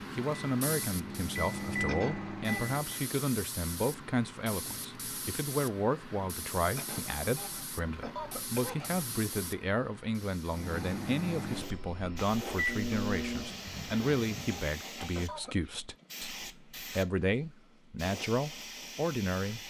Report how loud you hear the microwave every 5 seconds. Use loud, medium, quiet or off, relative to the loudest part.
loud, off, loud, off.